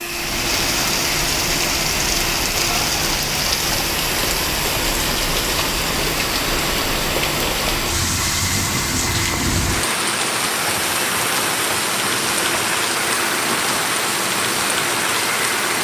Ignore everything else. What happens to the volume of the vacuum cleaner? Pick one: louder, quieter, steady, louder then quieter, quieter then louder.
steady.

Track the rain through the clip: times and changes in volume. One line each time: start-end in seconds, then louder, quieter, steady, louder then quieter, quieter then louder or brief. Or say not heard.
0.0-15.8 steady.